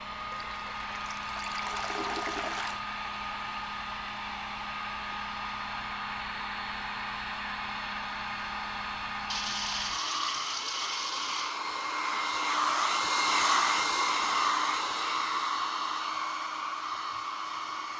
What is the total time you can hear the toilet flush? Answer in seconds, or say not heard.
5 s.